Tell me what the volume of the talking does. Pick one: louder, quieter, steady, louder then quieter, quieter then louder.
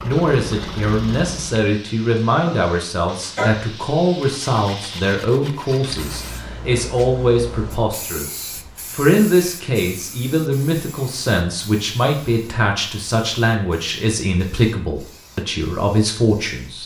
steady.